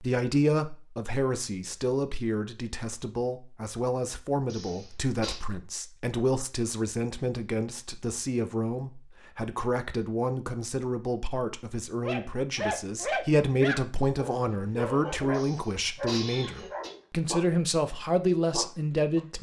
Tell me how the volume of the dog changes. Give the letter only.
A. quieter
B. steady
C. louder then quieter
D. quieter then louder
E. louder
A.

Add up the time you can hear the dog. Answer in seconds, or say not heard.
7 s.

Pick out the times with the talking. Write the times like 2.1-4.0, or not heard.
0.0-19.3.